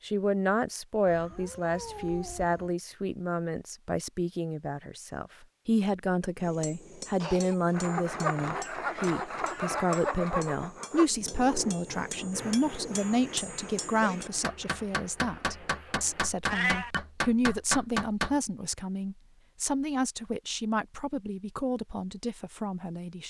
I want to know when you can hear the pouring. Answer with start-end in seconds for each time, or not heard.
not heard.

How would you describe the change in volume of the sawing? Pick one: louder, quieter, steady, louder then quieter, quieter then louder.
quieter.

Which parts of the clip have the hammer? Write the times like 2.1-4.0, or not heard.
6.3-18.4.